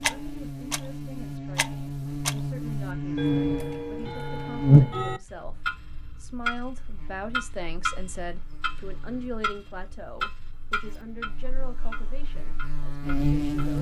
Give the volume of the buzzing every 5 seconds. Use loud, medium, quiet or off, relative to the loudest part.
loud, quiet, medium.